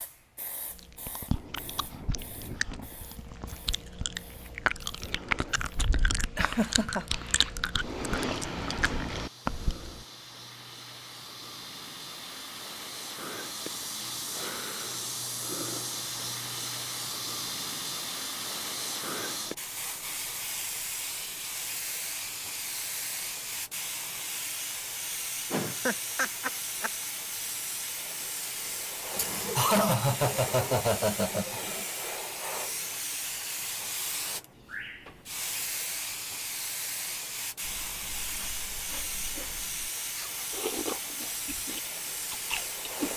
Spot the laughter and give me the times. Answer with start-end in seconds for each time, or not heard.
6.3-7.2, 25.5-26.9, 29.1-31.9.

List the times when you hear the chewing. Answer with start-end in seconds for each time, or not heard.
0.7-10.1, 37.6-43.1.